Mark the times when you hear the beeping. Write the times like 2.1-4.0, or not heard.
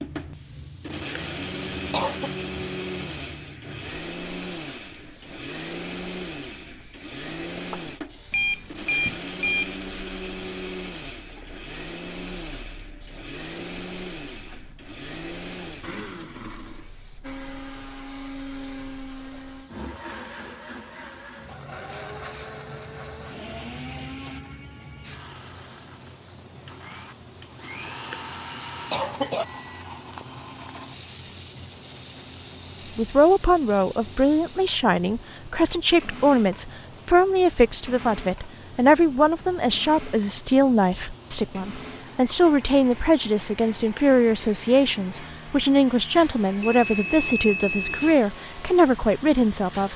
8.3-9.8, 29.6-30.8, 46.6-48.1.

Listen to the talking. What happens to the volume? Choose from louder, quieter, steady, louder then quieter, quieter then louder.
steady.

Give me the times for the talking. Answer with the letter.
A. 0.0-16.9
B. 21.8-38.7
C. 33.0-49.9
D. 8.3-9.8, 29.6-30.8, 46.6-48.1
C.